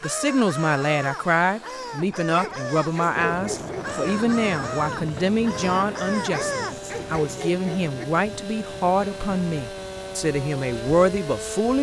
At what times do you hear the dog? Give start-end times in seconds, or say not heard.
2.4-4.0, 6.3-8.1.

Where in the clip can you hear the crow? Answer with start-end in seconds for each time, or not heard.
0.0-7.2.